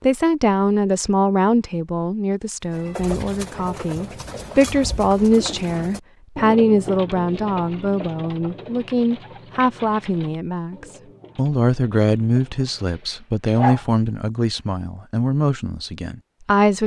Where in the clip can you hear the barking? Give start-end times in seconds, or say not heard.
12.8-14.0.